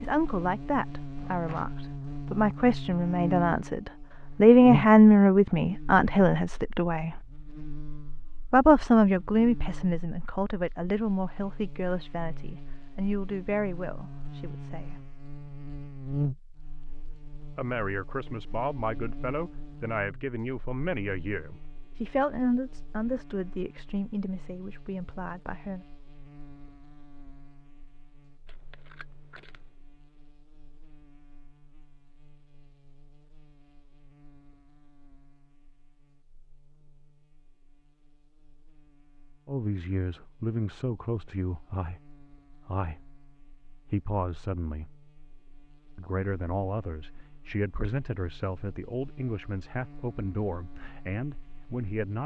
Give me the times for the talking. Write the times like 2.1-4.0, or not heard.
0.0-7.2, 8.5-14.9, 17.6-25.9, 39.5-43.1, 43.9-44.9, 46.0-52.2.